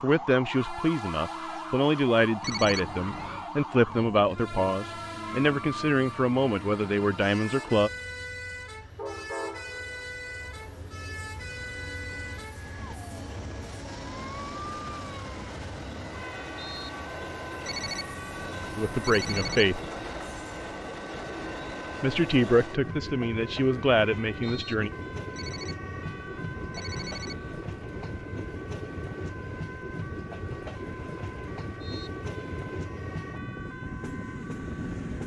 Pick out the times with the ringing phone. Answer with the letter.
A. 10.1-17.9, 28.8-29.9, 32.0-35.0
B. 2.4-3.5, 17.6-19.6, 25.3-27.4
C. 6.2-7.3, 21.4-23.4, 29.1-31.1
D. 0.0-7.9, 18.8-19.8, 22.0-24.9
B.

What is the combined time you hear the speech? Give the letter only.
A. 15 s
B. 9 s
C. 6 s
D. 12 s
D.